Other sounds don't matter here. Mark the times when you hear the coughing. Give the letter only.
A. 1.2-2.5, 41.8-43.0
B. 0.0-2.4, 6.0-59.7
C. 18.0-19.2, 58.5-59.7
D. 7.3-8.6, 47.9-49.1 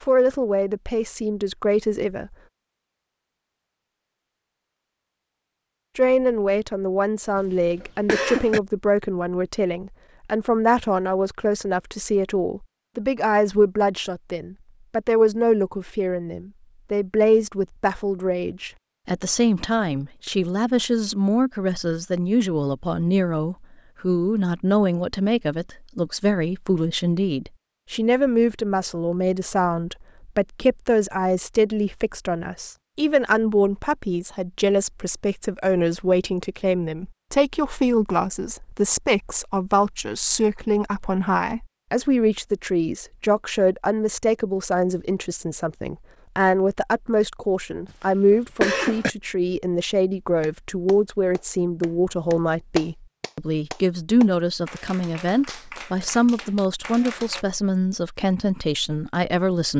D.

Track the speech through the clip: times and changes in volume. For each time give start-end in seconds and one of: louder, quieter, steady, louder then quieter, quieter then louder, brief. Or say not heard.
0.0-2.4 brief
6.0-59.7 steady.